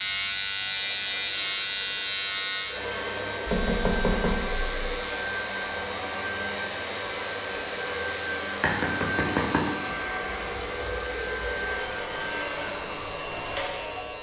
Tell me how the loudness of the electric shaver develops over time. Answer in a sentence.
The volume of the electric shaver goes down.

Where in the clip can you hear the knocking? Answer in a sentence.
The knocking can be heard from 3.5 to 4.9 s and from 8.6 to 9.9 s.